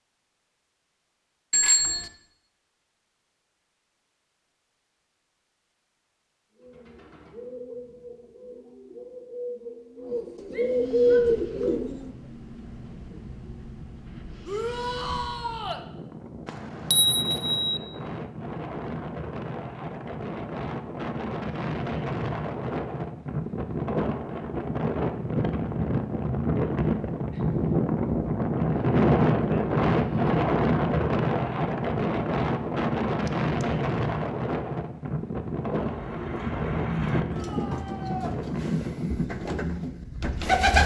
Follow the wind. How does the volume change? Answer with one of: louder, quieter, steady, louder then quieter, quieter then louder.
louder then quieter.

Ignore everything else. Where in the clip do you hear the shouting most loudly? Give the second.
15 s.